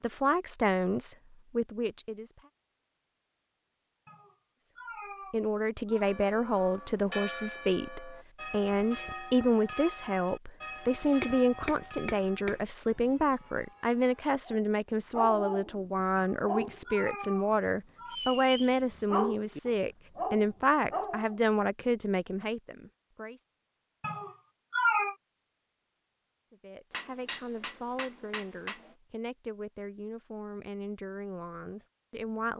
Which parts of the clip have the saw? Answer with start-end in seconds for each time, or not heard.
not heard.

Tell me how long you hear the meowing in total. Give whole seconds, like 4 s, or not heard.
5 s.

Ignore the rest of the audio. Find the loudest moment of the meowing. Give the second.
25 s.